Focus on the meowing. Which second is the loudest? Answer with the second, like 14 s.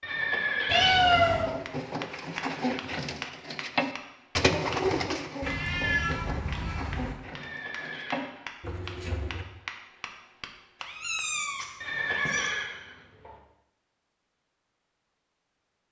1 s.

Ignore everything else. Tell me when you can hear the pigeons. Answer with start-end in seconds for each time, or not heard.
0.9-9.4.